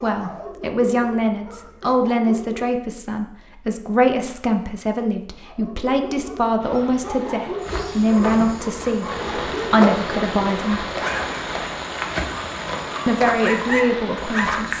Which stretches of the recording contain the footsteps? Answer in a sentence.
The footsteps can be heard from 7.6 to 14.7 s.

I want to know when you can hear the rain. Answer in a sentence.
The rain can be heard from 6.5 to 14.7 s.